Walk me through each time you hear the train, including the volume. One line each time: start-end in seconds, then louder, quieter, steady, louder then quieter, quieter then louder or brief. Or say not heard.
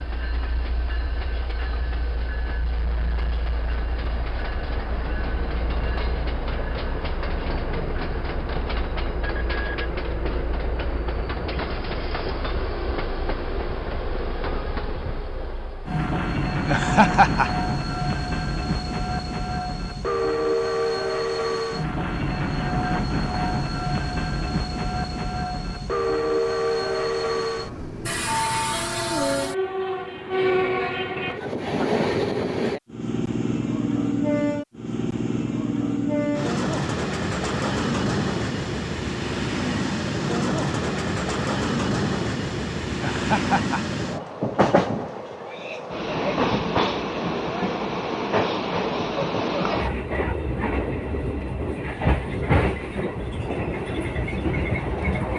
0.0-55.3 louder.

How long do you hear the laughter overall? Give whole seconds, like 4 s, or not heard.
2 s.